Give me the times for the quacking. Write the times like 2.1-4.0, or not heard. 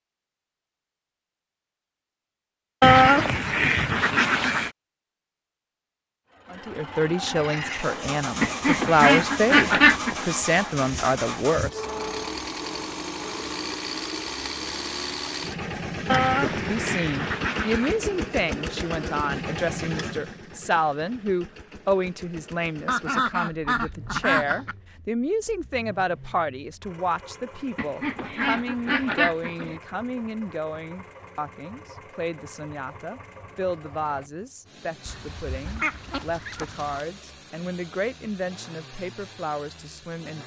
2.8-4.7, 8.4-10.2, 16.1-17.9, 22.9-24.8, 27.8-29.8, 35.0-37.0.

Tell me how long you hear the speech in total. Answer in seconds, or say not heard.
30 s.